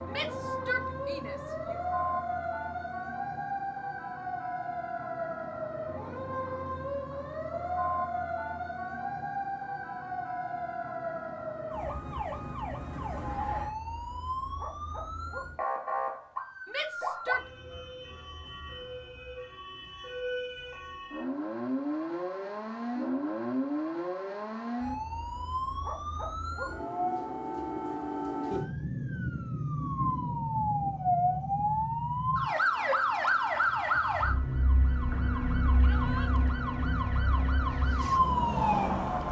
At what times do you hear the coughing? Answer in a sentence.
The coughing can't be heard in this clip.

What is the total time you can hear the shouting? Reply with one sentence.
You can hear the shouting for 3 seconds altogether.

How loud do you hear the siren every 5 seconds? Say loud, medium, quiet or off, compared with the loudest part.
medium, medium, medium, medium, medium, medium, loud, loud.